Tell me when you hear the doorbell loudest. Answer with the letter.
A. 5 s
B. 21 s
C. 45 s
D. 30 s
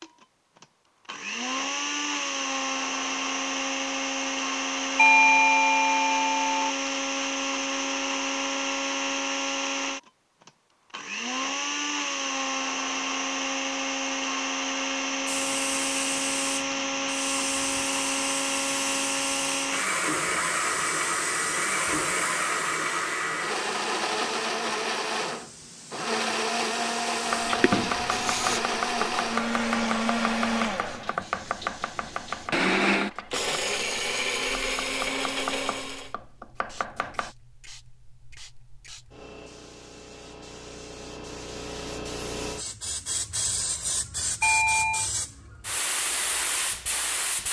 A.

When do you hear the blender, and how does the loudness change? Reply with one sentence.
The blender can be heard from 0.0 to 36.1 s, at a steady volume.